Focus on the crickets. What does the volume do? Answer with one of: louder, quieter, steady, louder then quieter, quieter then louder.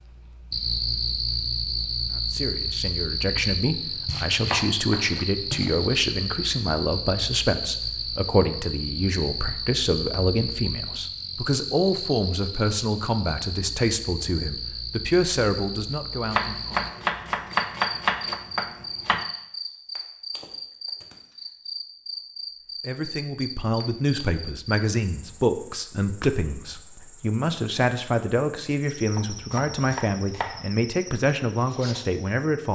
quieter.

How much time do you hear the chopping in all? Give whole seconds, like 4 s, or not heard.
6 s.